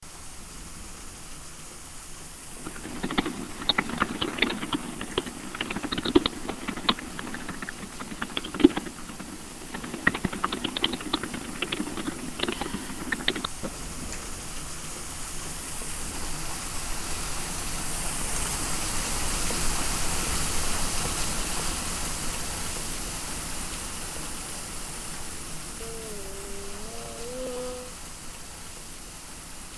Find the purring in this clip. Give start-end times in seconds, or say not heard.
not heard.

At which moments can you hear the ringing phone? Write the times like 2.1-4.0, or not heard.
not heard.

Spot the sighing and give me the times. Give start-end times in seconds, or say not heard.
12.5-13.1, 25.8-27.9.